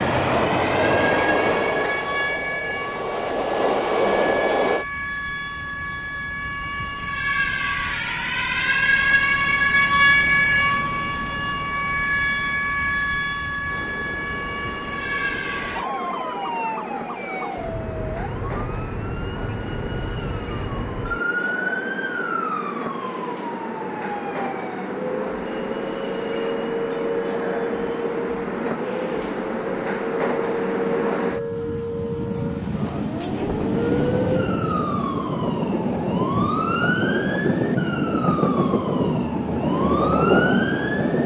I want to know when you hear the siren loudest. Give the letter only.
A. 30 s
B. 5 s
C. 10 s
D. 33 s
C.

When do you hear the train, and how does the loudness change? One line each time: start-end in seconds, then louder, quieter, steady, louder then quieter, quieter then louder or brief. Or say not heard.
0.0-4.8 quieter then louder
13.7-41.2 louder.